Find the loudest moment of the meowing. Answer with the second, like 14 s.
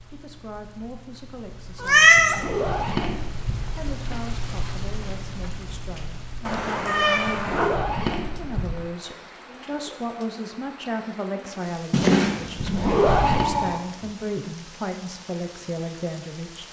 2 s.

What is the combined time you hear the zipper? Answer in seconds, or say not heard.
4 s.